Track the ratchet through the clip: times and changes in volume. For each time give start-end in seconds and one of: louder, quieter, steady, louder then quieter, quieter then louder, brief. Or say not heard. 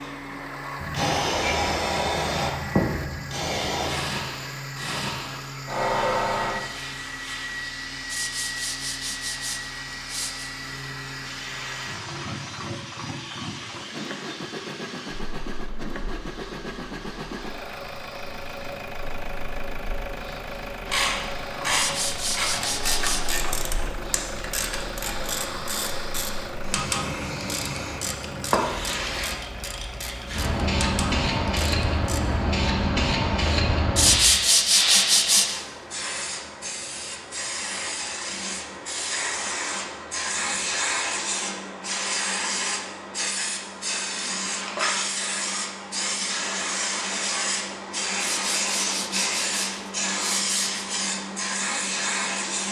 20.9-32.2 quieter.